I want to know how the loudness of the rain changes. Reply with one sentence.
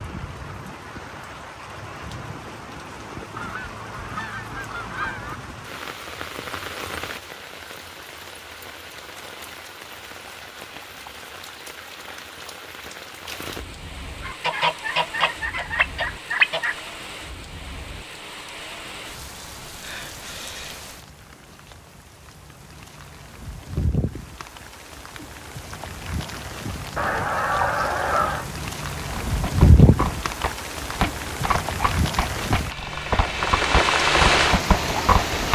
The volume of the rain goes up.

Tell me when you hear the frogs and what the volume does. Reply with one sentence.
You can't hear the frogs here.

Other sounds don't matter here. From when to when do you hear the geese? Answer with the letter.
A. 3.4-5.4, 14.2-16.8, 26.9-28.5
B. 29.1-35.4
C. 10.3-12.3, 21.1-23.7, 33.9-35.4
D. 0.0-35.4
A.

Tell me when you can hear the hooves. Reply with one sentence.
You can hear the hooves from 29.1 to 35.4 s.